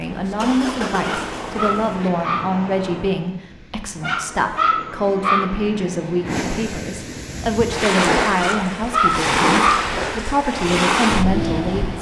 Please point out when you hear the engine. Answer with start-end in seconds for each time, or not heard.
0.0-3.3.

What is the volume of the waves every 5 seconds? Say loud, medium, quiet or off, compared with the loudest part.
quiet, loud, loud.